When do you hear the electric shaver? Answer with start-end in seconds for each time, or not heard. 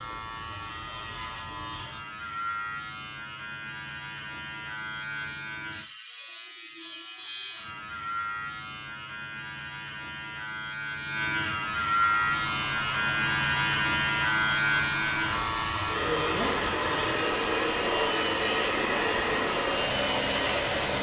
0.0-20.8.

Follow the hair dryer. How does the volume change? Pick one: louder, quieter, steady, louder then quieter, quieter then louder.
louder.